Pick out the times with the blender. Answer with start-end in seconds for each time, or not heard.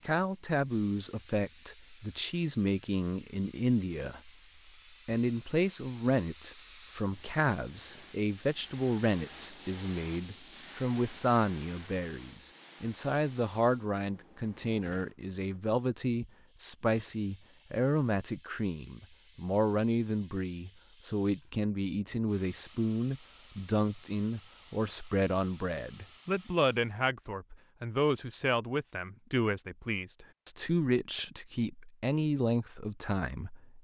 not heard.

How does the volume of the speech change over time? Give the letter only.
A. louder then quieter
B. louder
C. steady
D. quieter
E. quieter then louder
C.